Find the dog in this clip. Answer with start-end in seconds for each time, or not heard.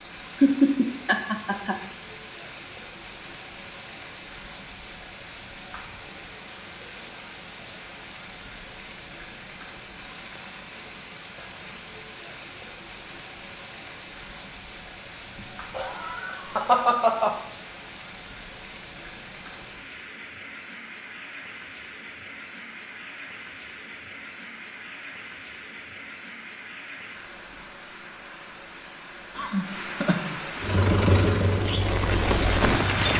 not heard.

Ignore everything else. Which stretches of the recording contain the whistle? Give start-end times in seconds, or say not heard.
not heard.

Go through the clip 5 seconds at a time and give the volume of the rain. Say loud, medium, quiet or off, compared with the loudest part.
quiet, quiet, quiet, quiet, quiet, quiet, loud.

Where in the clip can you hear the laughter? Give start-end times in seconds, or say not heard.
0.4-1.8, 15.3-17.4, 29.4-30.4.